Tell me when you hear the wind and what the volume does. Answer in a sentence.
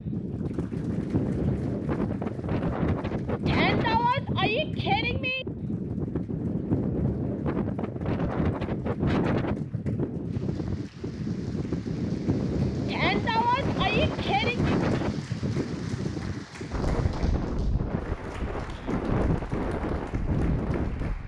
You can hear the wind from 0.0 to 21.2 s, at a steady volume.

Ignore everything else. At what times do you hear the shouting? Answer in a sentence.
You can hear the shouting from 3.5 to 5.5 s and from 12.8 to 14.8 s.